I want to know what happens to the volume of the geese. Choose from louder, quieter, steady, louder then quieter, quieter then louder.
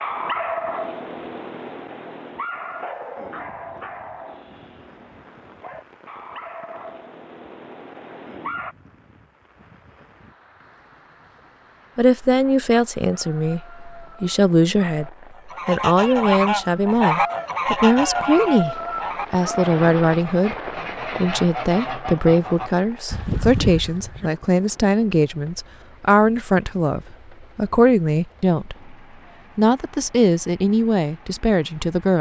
quieter then louder.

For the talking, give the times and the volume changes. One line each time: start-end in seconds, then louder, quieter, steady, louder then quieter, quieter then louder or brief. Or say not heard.
11.9-20.6 steady
21.1-28.9 steady
29.6-32.1 brief.